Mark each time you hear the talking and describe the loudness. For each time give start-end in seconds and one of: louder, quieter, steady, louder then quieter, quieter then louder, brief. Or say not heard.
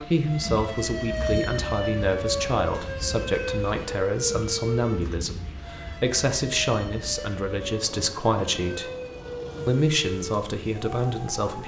0.0-8.9 steady
9.7-11.6 brief.